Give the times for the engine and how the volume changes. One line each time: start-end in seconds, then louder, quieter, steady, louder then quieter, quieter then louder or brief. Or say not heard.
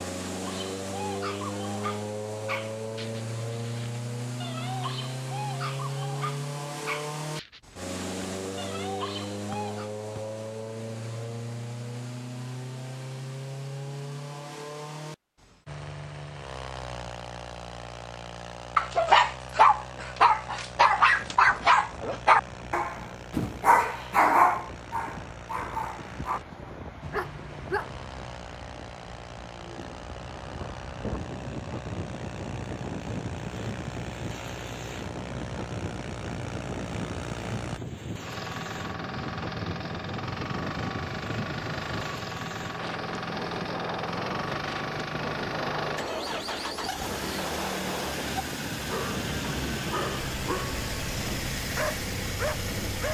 0.0-53.0 quieter then louder.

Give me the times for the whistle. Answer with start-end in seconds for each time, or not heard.
9.5-10.2.